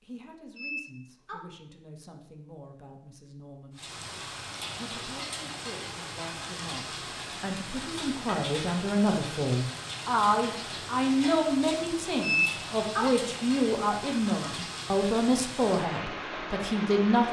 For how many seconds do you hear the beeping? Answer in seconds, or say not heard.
2 s.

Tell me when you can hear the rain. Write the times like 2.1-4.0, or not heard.
3.8-17.2.